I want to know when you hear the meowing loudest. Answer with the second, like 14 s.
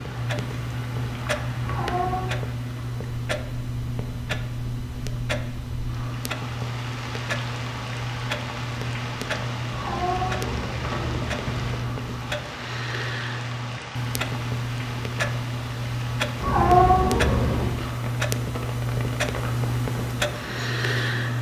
17 s.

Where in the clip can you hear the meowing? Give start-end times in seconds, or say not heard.
1.6-2.3, 9.7-11.7, 16.4-17.8.